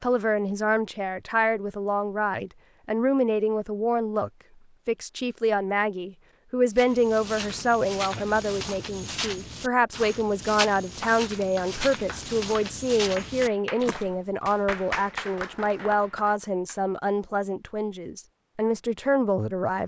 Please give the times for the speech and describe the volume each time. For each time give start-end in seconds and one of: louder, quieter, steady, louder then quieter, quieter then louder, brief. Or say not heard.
0.0-19.8 steady.